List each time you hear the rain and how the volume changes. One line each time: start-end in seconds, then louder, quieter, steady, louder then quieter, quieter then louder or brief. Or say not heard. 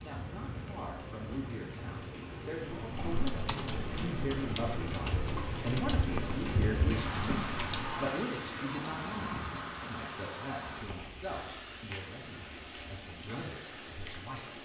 0.0-14.5 louder then quieter.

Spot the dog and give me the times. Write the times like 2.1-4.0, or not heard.
not heard.